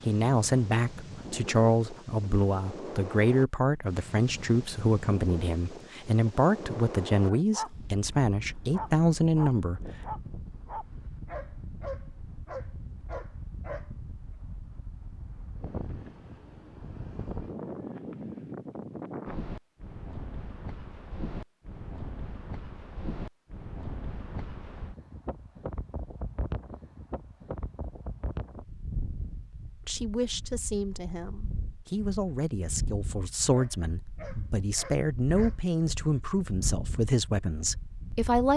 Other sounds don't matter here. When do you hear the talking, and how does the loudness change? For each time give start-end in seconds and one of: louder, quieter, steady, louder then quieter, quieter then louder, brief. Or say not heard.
0.1-9.8 steady
29.9-38.5 louder.